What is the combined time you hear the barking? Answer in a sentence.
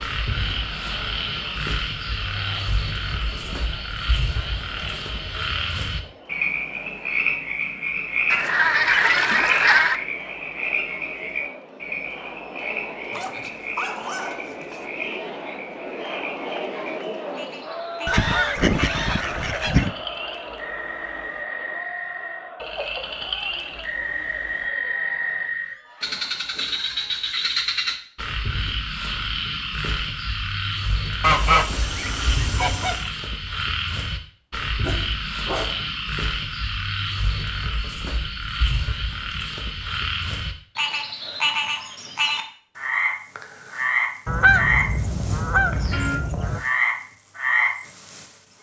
You can hear the barking for 3 seconds altogether.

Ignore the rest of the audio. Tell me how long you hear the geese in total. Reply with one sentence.
The geese can be heard for 8 seconds in total.